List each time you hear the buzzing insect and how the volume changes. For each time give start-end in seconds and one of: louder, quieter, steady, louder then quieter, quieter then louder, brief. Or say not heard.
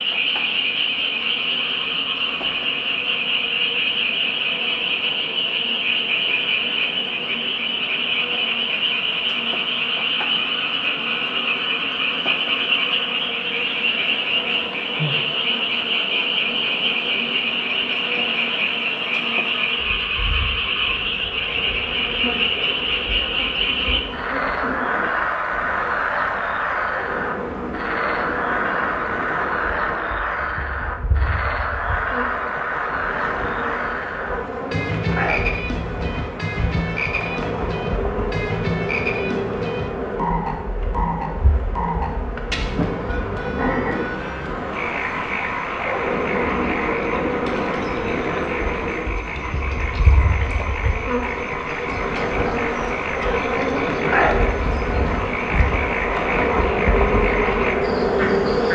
0.0-58.7 louder.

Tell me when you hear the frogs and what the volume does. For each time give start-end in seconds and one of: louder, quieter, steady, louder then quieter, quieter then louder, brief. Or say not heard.
0.0-58.7 quieter.